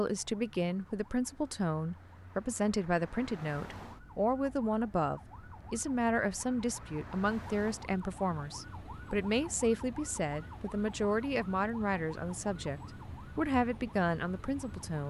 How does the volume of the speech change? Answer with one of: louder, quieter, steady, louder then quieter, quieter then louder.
steady.